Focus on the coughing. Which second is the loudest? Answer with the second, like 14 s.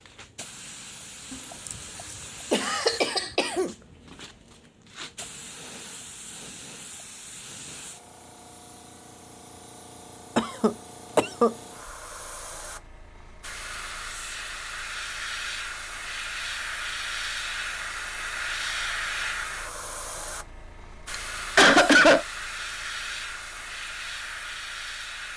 22 s.